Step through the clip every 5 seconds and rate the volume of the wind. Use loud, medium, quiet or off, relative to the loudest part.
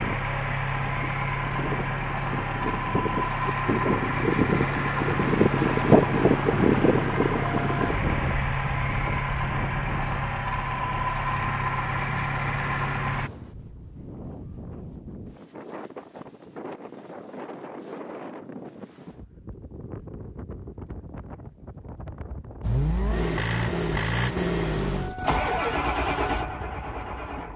medium, loud, quiet, quiet, quiet, quiet.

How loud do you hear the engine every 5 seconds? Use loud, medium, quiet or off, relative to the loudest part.
loud, loud, loud, off, loud, loud.